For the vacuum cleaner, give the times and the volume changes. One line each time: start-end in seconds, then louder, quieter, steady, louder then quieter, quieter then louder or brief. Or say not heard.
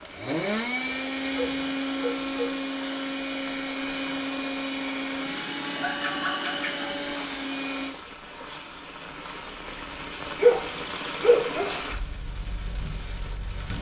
0.0-8.0 steady.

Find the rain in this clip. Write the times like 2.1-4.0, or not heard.
0.0-13.7.